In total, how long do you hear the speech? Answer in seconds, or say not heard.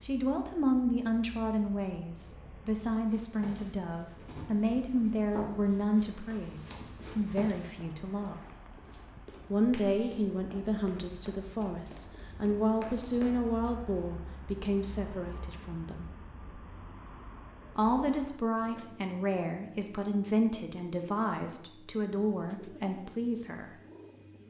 21 s.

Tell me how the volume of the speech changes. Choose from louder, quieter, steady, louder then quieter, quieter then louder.
steady.